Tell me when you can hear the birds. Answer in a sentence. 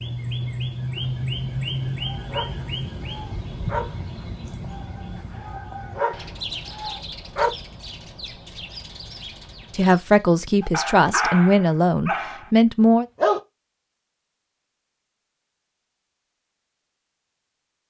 You can hear the birds from 0.0 to 10.3 s.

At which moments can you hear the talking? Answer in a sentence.
You can hear the talking from 9.8 to 13.1 s.